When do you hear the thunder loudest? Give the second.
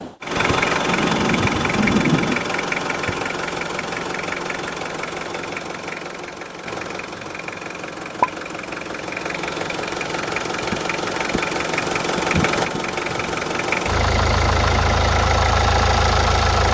2 s.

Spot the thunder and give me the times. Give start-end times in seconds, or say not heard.
0.8-2.4.